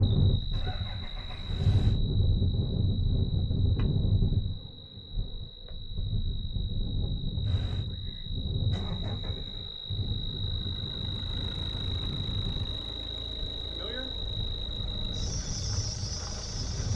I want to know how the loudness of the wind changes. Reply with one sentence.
The loudness of the wind goes down.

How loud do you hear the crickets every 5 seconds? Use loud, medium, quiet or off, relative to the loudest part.
medium, medium, loud, loud.